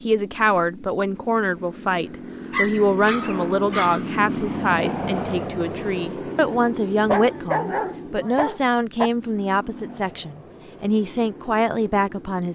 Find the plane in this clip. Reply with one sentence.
You can hear the plane from 0.0 to 12.5 s.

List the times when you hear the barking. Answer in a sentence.
You can hear the barking from 2.5 to 4.0 s and from 7.0 to 9.1 s.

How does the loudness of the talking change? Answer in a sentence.
The volume of the talking stays about the same.